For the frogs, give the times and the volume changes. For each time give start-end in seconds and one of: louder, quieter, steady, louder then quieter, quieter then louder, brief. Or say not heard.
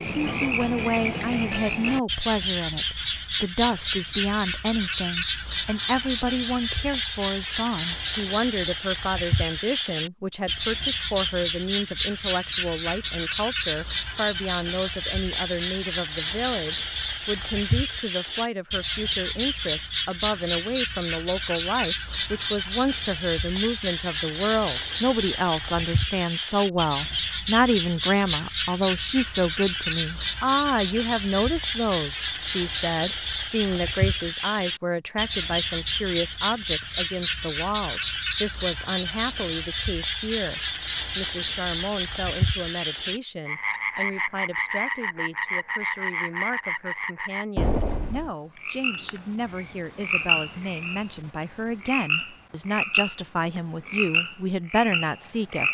0.0-55.6 steady.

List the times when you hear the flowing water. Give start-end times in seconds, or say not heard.
not heard.